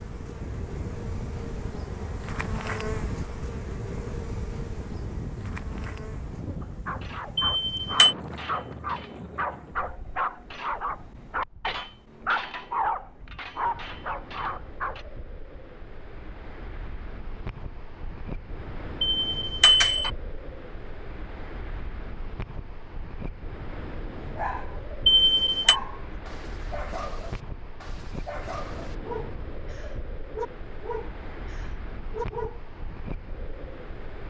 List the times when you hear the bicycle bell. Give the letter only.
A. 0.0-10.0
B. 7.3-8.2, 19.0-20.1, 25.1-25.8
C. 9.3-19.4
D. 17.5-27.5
B.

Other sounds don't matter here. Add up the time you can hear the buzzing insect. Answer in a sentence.
You can hear the buzzing insect for 10 seconds altogether.